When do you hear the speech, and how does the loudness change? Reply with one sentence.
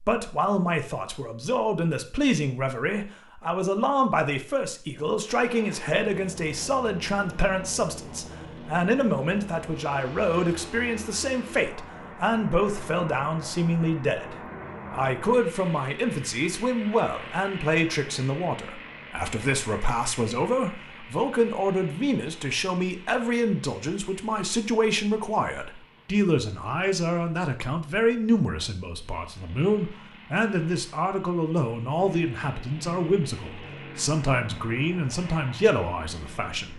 The speech can be heard from 0.0 to 36.7 s, at a steady volume.